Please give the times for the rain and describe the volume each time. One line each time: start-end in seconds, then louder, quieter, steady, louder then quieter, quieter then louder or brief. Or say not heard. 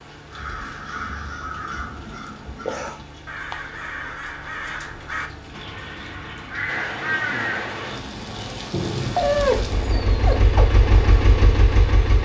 0.0-12.2 louder.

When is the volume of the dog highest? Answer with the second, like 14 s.
9 s.